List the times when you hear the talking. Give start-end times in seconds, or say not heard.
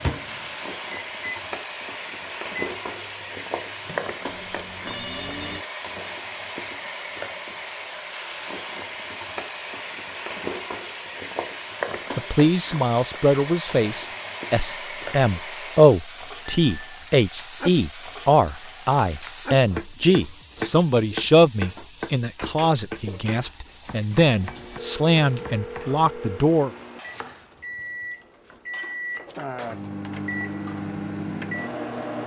12.2-26.7.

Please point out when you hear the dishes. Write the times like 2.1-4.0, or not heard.
not heard.